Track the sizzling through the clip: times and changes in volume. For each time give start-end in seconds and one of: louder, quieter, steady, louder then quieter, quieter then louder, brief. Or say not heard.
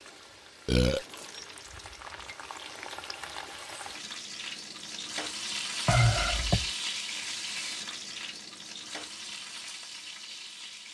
0.0-10.9 louder then quieter.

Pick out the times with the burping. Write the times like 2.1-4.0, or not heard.
0.7-1.1, 5.8-6.7.